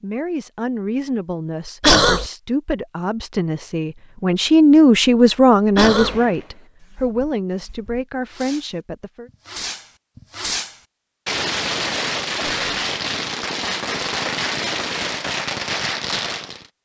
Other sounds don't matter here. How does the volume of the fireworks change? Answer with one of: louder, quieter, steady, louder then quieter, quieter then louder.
louder.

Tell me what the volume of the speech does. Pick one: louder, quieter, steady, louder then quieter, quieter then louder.
louder then quieter.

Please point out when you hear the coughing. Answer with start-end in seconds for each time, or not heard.
1.8-2.2, 5.8-6.2, 12.4-12.8.